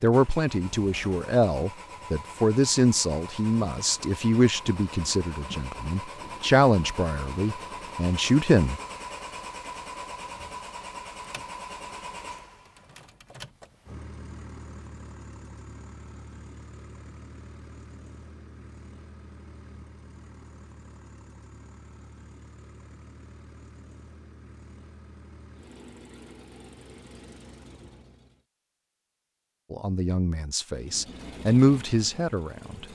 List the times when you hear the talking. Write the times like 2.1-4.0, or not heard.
0.0-8.8, 29.7-32.9.